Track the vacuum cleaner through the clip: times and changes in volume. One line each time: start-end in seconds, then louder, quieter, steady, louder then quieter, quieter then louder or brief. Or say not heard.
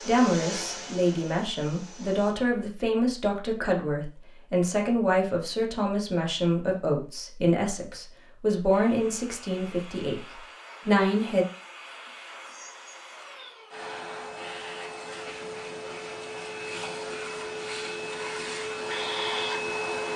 0.0-2.4 brief
8.7-20.1 louder.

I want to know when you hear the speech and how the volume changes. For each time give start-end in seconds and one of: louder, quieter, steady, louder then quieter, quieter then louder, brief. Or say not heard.
0.1-10.2 steady
10.8-11.4 brief.